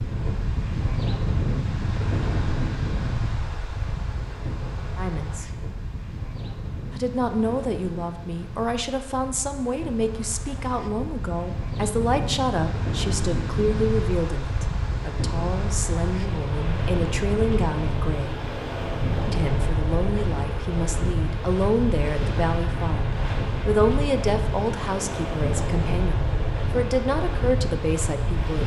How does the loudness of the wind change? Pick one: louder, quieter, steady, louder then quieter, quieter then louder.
quieter then louder.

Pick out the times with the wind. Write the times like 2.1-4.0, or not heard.
0.0-28.6.